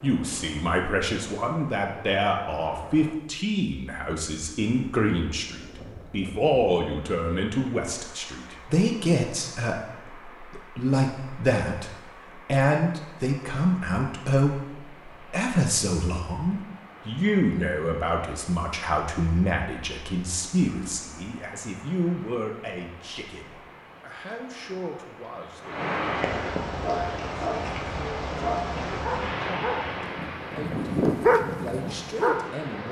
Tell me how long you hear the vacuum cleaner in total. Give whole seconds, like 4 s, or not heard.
not heard.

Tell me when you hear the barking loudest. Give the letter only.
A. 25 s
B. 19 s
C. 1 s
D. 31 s
D.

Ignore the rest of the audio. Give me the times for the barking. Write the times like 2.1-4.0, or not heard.
26.8-32.5.